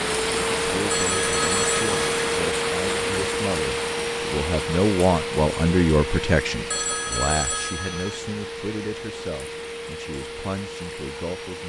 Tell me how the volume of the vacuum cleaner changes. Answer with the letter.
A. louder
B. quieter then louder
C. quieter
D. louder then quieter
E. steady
C.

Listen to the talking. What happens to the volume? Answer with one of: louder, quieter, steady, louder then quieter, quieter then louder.
louder then quieter.